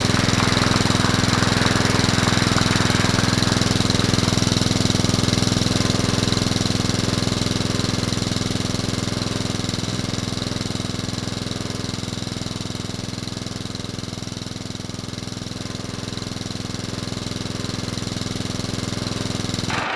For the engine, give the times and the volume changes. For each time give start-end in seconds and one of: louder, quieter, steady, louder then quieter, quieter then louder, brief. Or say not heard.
0.0-19.9 quieter.